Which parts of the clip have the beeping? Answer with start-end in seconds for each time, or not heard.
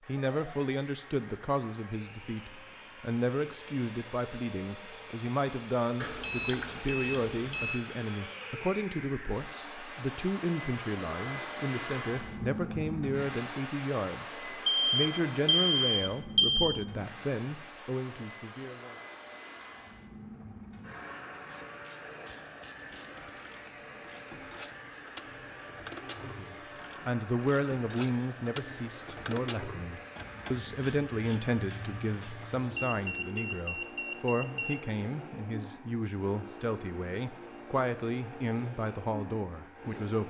6.0-7.8, 14.7-16.6, 32.8-34.8.